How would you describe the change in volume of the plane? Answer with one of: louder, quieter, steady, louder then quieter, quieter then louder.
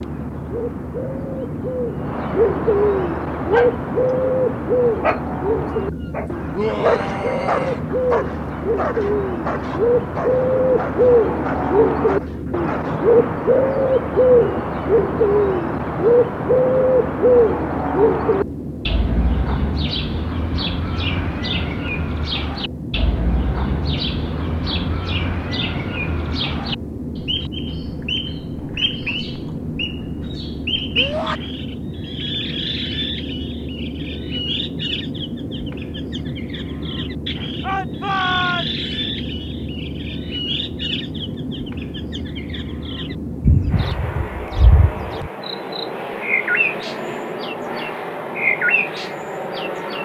steady.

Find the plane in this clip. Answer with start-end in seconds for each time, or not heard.
0.0-50.0.